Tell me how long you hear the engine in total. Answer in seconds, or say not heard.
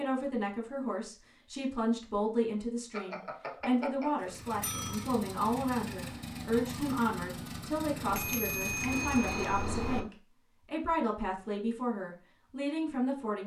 5 s.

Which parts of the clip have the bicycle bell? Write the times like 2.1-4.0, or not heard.
2.9-5.1, 8.1-10.0.